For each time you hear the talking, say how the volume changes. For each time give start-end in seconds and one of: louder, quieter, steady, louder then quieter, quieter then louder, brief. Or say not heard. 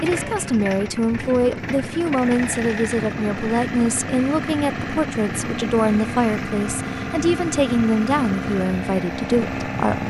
0.0-10.0 steady.